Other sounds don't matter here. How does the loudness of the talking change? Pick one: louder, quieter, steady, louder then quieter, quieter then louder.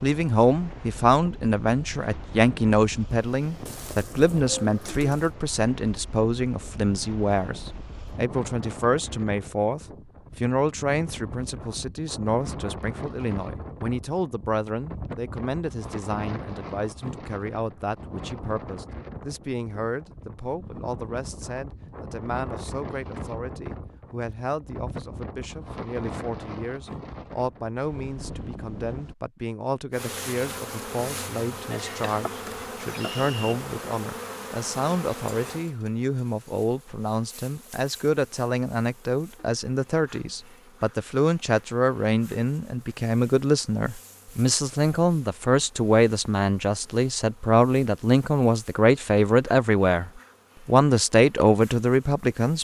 quieter then louder.